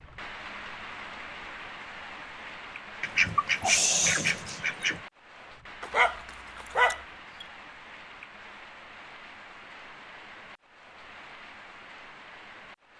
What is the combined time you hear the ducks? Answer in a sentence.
You can hear the ducks for 2 seconds altogether.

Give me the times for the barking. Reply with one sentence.
You can hear the barking from 5.8 to 7.5 s.